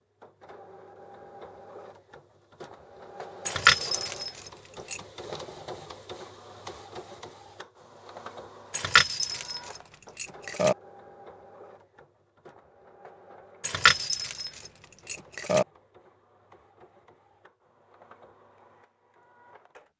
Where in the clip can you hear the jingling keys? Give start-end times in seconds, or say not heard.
3.5-5.0, 8.7-10.8, 13.6-15.7.